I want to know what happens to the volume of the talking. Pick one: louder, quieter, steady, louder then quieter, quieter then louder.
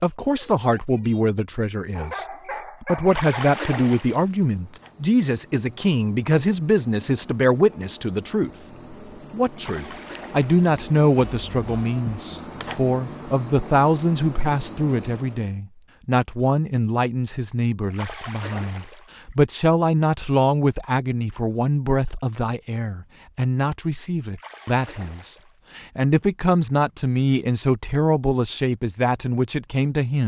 steady.